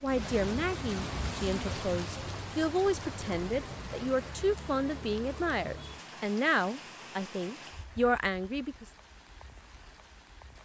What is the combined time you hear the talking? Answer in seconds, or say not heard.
9 s.